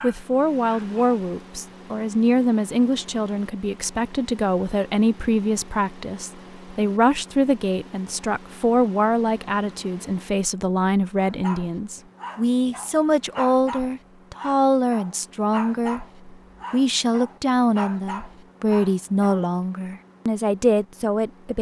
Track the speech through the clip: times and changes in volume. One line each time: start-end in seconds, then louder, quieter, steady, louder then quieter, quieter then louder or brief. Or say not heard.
0.0-21.5 steady.